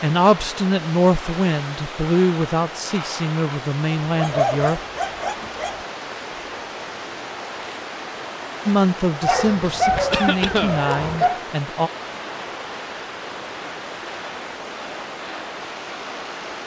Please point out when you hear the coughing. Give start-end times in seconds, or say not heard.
10.1-10.8.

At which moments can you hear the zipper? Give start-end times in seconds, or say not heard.
not heard.